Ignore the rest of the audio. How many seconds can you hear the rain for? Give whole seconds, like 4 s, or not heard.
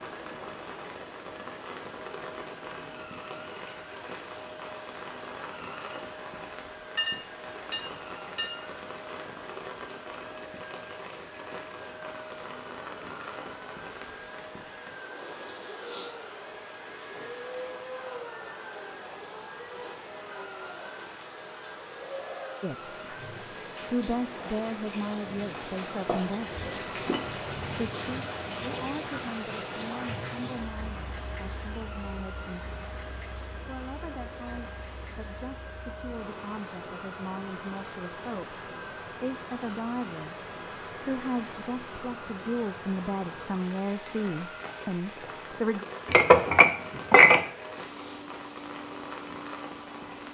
50 s.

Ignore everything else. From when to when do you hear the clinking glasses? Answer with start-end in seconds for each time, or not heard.
7.0-8.7, 26.1-27.2, 46.0-47.4.